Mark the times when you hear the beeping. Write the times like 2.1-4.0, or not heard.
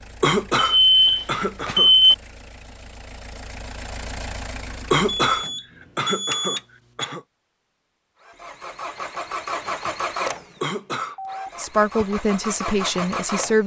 0.6-2.1, 5.0-7.0, 10.9-12.1.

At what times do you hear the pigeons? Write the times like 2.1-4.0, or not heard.
not heard.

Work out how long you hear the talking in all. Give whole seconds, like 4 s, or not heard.
2 s.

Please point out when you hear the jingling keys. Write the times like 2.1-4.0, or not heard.
not heard.